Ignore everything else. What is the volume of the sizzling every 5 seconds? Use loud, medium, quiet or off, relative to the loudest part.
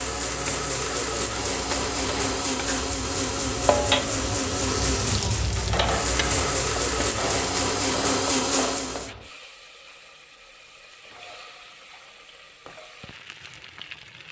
loud, loud, quiet.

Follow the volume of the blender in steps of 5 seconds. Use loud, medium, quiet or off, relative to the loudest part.
loud, loud, off.